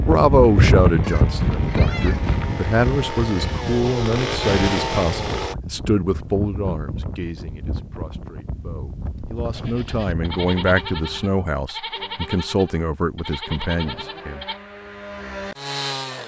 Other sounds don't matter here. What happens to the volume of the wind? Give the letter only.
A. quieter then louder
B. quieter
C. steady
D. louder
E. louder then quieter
B.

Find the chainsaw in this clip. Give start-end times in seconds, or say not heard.
0.0-5.5, 13.8-16.2.